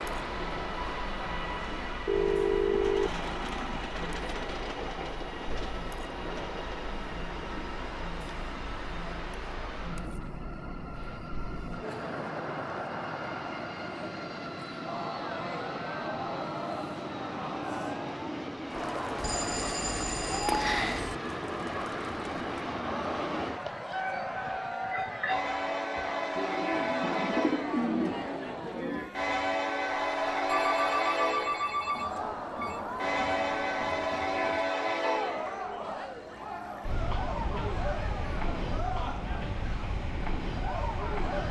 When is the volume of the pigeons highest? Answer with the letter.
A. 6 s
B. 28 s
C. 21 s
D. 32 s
B.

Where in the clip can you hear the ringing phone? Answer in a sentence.
You can hear the ringing phone from 2.0 to 3.1 s, from 19.1 to 21.1 s and from 30.4 to 32.9 s.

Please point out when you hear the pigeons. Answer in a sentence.
You can hear the pigeons from 26.4 to 29.1 s.